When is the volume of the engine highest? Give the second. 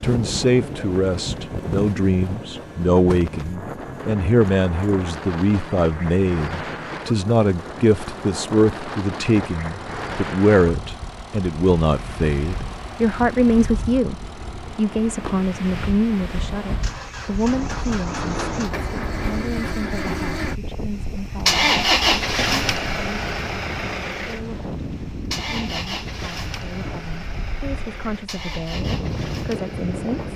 22 s.